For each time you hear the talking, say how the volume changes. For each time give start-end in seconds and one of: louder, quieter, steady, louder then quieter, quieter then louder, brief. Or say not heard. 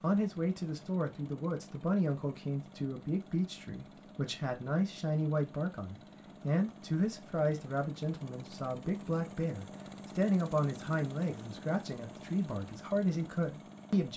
0.0-14.1 steady.